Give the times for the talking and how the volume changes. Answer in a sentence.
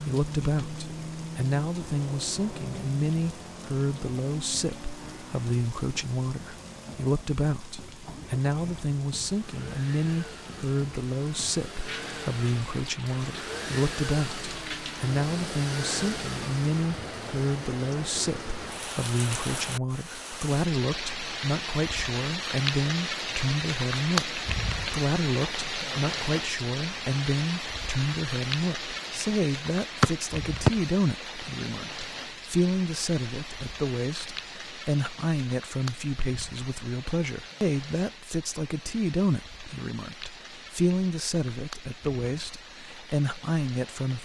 You can hear the talking from 0.0 to 44.2 s, at a steady volume.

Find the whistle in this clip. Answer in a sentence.
You can hear the whistle from 30.0 to 30.7 s.